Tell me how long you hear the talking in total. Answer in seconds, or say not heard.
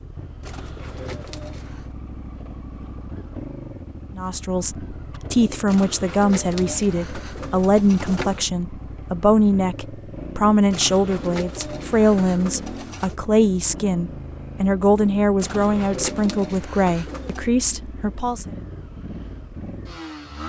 14 s.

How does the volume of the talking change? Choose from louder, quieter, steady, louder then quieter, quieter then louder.
steady.